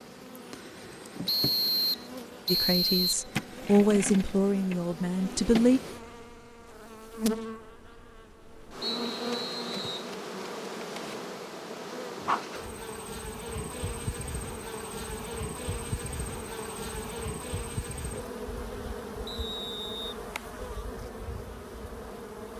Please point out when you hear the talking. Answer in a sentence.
You can hear the talking from 2.5 to 5.8 s.